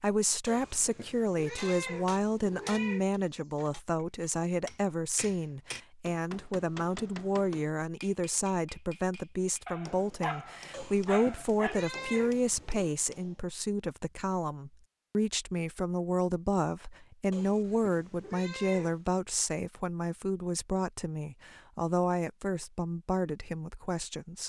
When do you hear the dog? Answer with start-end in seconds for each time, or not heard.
9.7-11.8.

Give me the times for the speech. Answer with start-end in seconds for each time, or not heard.
0.0-24.4.